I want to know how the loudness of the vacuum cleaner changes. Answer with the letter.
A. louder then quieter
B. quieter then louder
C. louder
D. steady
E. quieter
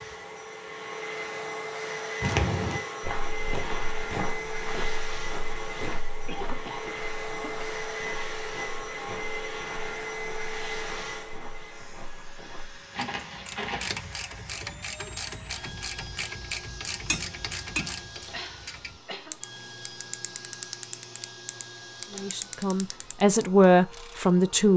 E.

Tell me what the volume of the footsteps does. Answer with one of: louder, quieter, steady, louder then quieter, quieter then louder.
quieter then louder.